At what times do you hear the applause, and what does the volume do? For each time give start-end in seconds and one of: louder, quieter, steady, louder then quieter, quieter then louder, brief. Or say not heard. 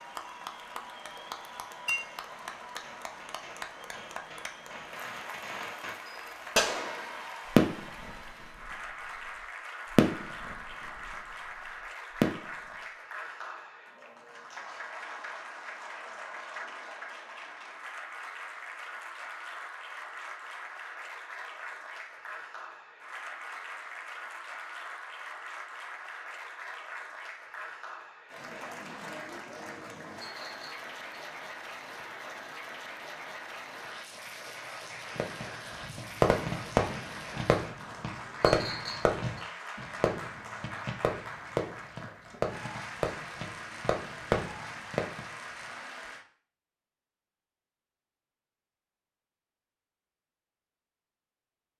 0.0-46.2 steady.